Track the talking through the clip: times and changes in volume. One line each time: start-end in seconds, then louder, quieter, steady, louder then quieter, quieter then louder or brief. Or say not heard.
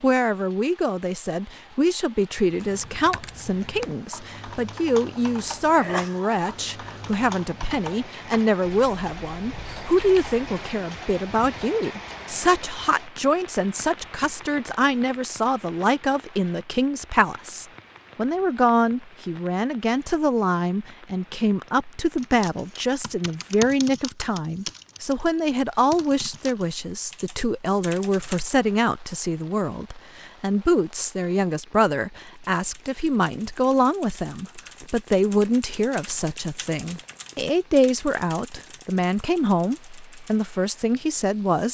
0.0-41.6 steady.